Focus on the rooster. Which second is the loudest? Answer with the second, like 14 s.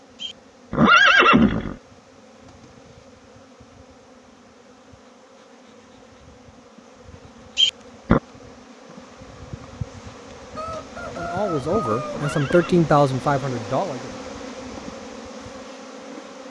12 s.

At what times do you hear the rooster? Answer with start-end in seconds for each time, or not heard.
10.6-12.4.